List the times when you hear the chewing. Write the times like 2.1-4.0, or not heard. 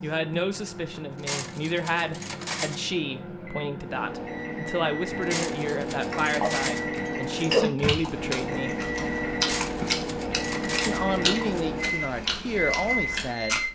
6.1-13.7.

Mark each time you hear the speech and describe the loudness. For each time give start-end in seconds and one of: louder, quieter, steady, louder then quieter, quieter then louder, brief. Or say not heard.
0.0-8.8 steady
10.8-13.6 brief.